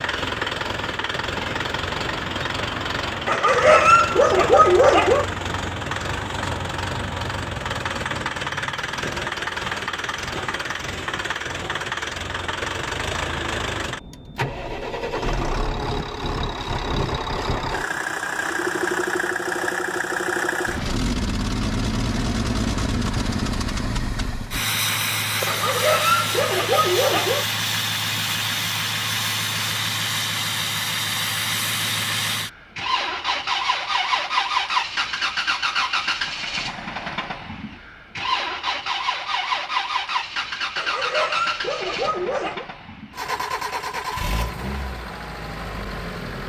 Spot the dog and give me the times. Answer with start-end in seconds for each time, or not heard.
3.2-5.2, 25.4-27.4, 40.8-42.6.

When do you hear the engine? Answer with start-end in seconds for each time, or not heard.
0.0-46.4.